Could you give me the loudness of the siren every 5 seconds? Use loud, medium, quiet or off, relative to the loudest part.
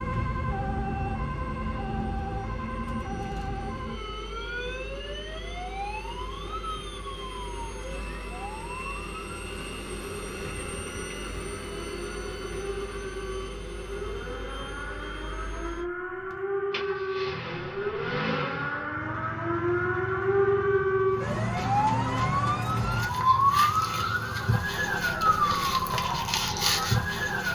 medium, quiet, quiet, medium, loud, loud.